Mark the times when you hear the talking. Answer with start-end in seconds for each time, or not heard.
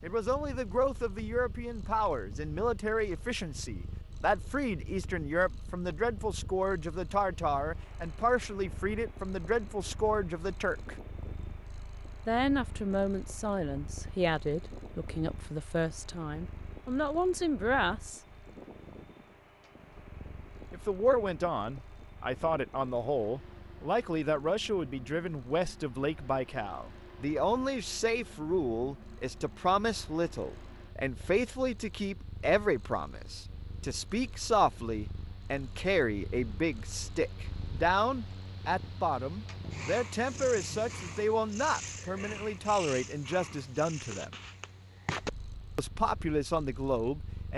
0.0-10.9, 12.2-18.2, 20.7-44.4, 45.8-47.5.